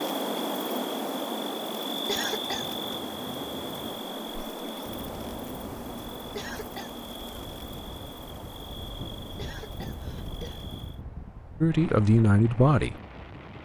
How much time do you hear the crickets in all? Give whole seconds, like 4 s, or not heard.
11 s.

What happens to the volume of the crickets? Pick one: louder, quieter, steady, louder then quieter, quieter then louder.
quieter.